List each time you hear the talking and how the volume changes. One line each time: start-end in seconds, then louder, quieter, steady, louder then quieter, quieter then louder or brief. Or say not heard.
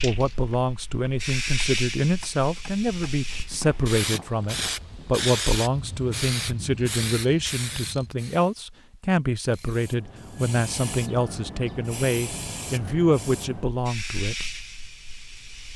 0.0-14.5 steady.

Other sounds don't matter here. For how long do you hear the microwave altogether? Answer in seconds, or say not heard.
not heard.